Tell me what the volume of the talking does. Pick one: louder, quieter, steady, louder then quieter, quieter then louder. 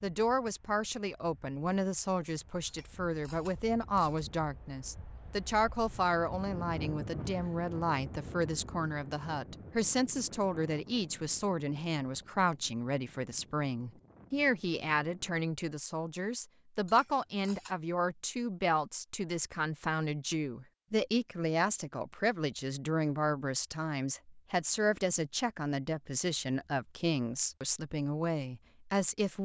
steady.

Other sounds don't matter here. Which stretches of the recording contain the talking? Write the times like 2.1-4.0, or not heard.
0.0-29.4.